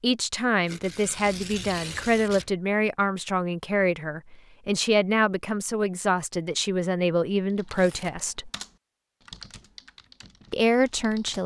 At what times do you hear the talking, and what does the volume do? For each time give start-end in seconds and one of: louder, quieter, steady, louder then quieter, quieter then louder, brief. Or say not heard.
0.0-8.5 steady
10.5-11.4 brief.